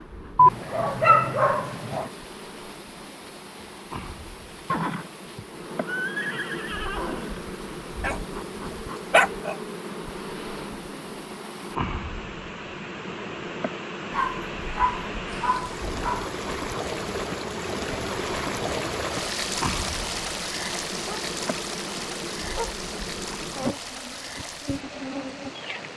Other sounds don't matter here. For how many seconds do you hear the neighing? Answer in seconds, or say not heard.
3 s.